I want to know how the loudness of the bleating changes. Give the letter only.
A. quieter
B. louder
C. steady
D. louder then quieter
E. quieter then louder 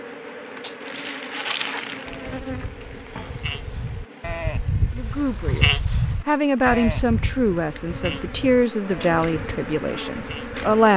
D.